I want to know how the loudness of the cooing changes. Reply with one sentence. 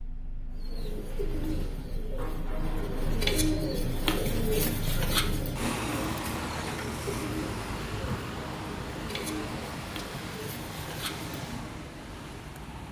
The volume of the cooing goes up, then down.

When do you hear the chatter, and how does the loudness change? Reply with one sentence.
You can't hear the chatter here.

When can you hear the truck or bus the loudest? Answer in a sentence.
The volume of the truck or bus peaks at 6 seconds.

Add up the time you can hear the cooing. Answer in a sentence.
You can hear the cooing for 11 seconds altogether.